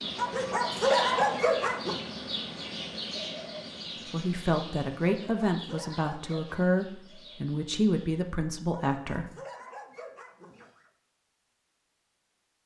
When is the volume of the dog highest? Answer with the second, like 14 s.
1 s.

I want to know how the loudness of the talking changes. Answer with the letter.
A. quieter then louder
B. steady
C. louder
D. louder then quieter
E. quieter
B.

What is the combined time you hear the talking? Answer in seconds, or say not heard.
5 s.